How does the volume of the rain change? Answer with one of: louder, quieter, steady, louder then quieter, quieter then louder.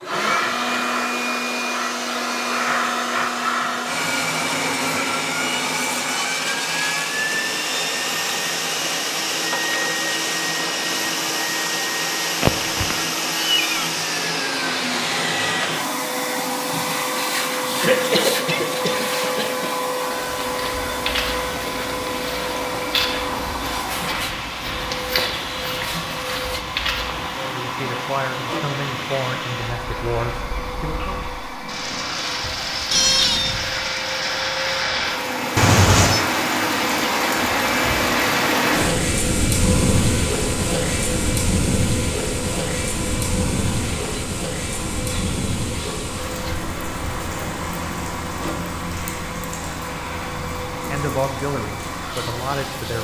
louder then quieter.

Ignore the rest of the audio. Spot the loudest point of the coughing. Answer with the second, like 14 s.
18 s.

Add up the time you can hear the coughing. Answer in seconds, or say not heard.
2 s.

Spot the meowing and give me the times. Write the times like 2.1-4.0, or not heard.
12.4-13.9, 32.9-33.5, 35.5-36.2.